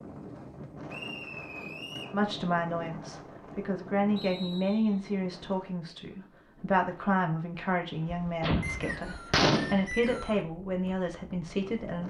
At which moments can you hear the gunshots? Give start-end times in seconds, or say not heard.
8.2-9.8.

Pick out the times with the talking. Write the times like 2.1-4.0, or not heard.
2.1-12.0.